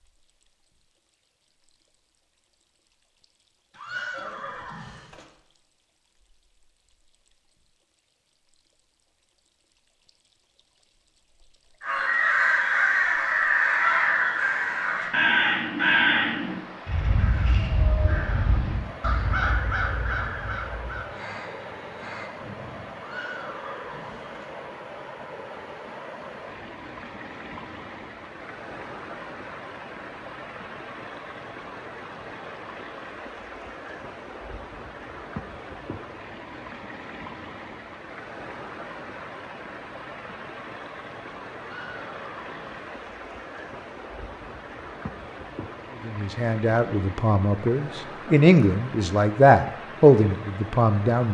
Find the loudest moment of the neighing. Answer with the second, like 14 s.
4 s.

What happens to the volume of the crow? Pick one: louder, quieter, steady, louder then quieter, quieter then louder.
quieter.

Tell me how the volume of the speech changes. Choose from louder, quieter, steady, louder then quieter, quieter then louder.
louder.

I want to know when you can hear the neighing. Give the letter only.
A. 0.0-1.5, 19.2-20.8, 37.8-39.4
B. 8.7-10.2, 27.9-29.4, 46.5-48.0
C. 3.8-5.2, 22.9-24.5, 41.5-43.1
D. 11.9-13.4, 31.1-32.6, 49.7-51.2
C.